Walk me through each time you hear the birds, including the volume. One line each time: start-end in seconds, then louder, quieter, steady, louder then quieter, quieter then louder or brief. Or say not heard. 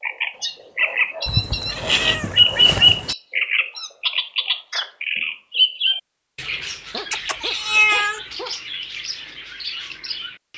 0.0-10.5 louder then quieter.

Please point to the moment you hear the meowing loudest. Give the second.
8 s.